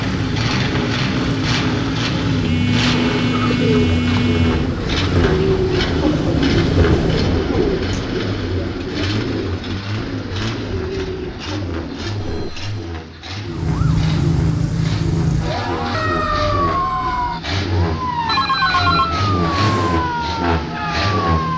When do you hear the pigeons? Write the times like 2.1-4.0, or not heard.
3.2-12.6.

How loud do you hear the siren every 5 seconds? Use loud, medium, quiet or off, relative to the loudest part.
medium, medium, loud, loud, medium.